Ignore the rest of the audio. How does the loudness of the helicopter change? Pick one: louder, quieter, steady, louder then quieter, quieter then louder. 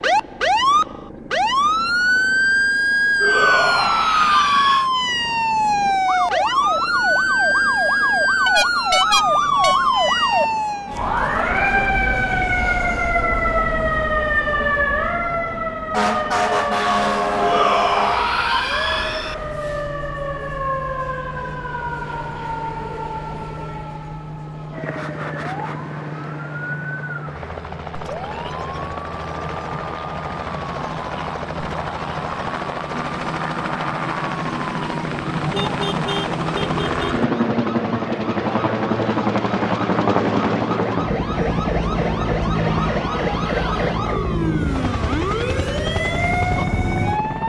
louder.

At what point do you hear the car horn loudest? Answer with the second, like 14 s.
9 s.